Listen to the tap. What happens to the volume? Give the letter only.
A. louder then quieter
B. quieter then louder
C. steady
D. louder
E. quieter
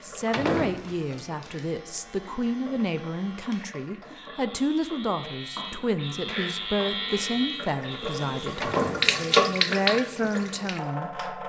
D.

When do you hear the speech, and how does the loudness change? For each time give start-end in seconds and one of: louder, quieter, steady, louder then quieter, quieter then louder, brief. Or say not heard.
0.0-11.2 steady.